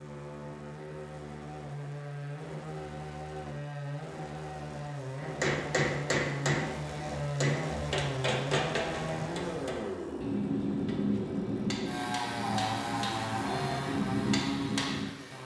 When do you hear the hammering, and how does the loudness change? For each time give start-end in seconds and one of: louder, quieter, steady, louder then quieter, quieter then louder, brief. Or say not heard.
5.2-15.1 steady.